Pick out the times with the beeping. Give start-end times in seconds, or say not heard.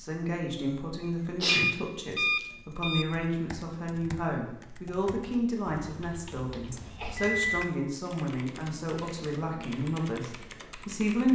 1.4-3.0, 6.7-7.7.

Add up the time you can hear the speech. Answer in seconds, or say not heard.
11 s.